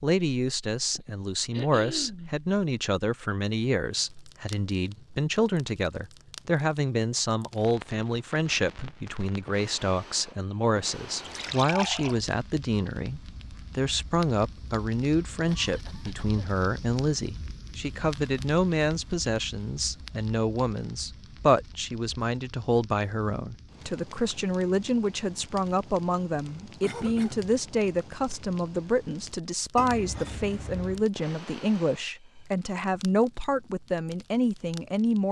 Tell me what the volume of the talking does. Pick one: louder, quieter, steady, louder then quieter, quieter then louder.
steady.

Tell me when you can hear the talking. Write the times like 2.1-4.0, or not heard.
0.0-35.2.